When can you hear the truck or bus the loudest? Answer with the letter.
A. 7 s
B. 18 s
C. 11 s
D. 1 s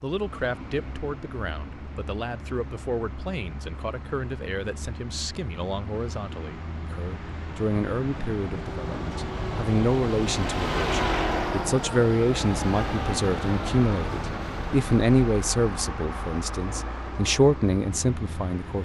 C.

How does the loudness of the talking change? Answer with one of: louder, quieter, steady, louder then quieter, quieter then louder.
louder.